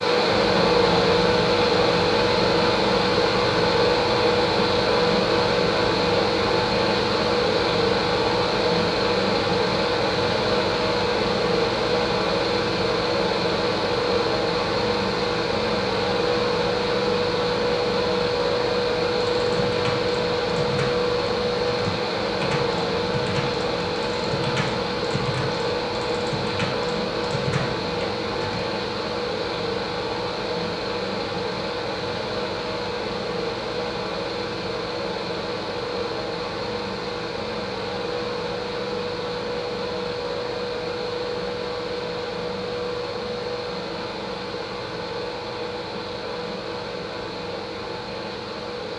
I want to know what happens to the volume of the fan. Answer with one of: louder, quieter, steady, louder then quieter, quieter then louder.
quieter.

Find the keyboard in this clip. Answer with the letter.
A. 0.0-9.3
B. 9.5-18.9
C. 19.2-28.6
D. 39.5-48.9
C.